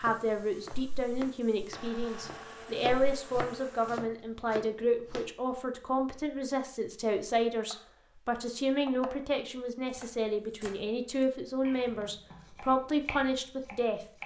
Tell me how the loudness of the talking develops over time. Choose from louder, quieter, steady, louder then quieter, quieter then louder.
steady.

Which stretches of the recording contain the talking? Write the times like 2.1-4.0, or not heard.
0.0-14.1.